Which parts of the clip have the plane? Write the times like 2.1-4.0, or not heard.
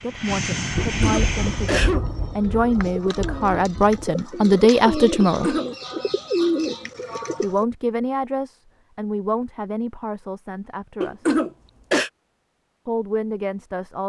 0.0-1.9.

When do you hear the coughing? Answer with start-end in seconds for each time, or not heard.
0.8-2.0, 5.2-5.7, 11.0-12.1.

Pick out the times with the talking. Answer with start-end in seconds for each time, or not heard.
0.0-5.5, 7.4-11.2, 12.8-14.0.